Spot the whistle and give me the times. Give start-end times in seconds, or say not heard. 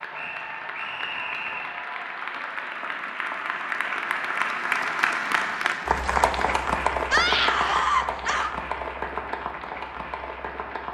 0.1-1.8.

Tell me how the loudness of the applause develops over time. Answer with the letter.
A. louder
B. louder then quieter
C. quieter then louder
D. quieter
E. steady
B.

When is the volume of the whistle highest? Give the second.
1 s.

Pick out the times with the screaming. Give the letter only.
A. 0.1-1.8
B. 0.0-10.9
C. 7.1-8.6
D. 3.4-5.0
C.